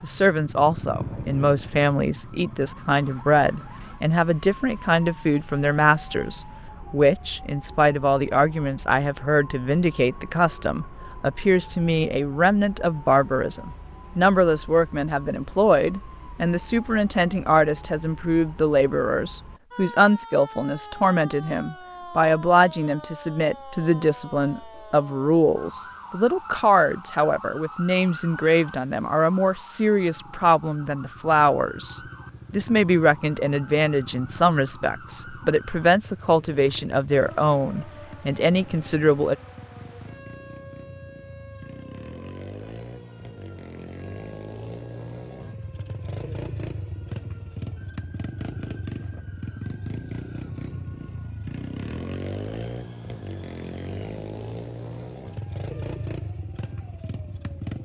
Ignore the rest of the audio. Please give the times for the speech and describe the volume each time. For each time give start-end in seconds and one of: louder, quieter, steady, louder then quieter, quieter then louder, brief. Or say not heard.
0.0-39.4 steady.